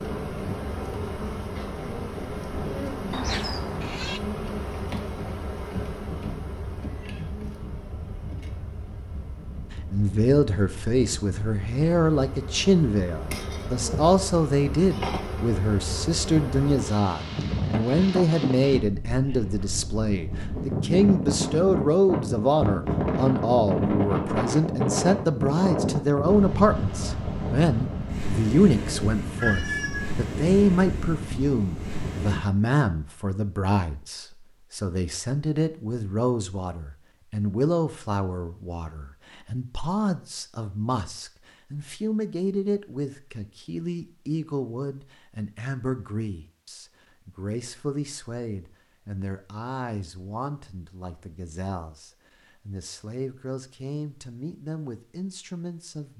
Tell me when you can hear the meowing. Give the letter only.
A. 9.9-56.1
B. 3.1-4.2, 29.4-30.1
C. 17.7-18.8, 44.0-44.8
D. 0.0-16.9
B.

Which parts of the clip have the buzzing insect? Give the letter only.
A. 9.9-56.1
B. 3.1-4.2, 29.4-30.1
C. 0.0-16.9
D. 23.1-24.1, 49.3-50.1
C.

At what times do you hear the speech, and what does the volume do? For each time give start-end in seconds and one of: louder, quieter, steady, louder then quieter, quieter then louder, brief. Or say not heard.
9.9-56.1 quieter.